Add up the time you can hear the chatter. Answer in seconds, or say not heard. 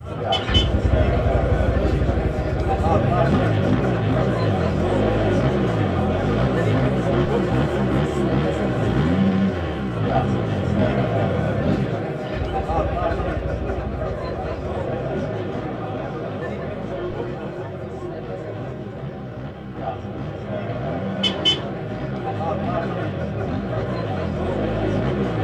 25 s.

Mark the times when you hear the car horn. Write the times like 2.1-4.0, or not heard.
0.3-0.8, 21.2-21.6.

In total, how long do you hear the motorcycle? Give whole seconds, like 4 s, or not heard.
25 s.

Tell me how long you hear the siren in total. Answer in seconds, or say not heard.
not heard.